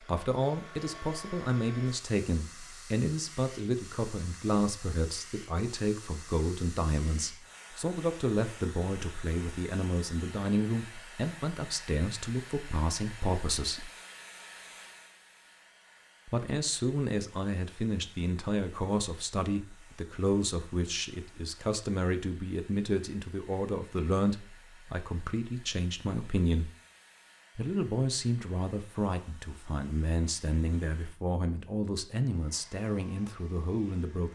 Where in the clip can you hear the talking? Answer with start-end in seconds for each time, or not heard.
0.1-13.9, 16.2-26.7, 27.6-34.3.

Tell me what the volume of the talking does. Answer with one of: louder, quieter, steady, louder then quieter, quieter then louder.
steady.